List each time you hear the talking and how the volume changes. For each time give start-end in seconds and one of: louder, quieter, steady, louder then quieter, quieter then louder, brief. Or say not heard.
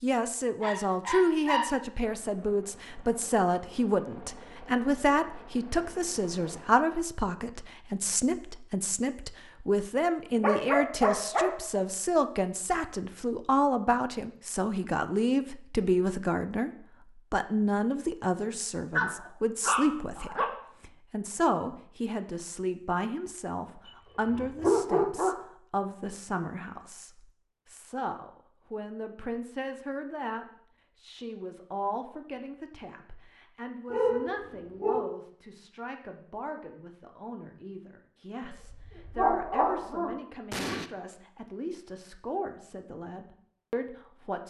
0.0-16.7 steady
17.3-44.4 quieter.